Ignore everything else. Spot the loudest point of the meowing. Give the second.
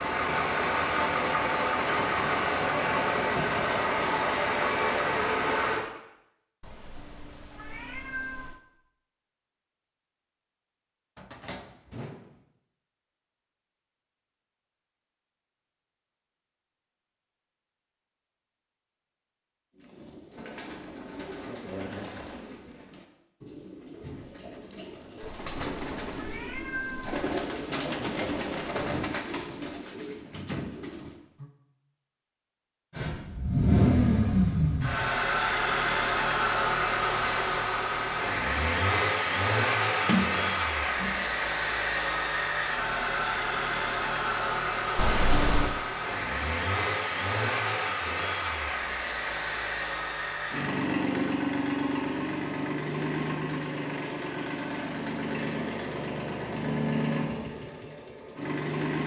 45 s.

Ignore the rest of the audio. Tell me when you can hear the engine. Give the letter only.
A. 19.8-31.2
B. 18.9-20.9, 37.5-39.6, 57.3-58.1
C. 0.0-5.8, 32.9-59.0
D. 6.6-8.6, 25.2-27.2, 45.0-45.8
C.